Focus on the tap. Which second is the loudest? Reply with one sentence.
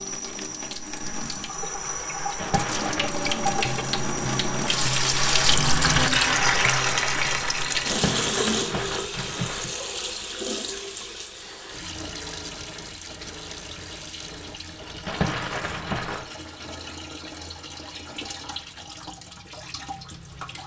The volume of the tap peaks at 6 seconds.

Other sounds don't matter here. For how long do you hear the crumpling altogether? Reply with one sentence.
The crumpling can be heard for 4 seconds in total.